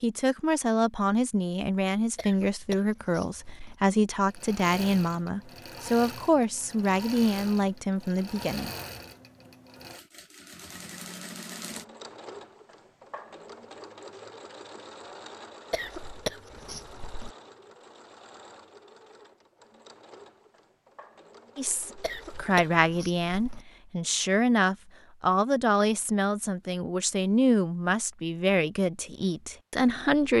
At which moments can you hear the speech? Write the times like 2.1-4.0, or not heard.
0.0-8.7, 21.6-30.3.